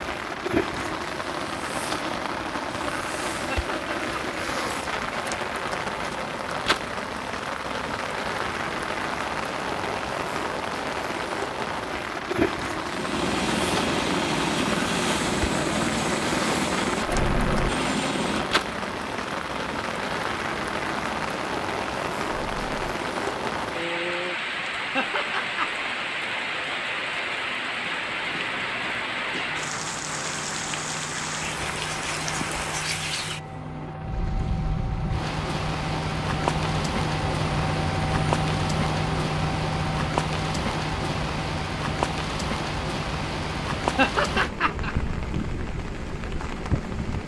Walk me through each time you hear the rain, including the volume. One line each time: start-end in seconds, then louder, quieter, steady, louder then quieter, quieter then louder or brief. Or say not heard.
0.0-47.2 steady.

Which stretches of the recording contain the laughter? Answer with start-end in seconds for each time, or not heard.
3.5-4.4, 24.9-25.9, 44.0-45.0.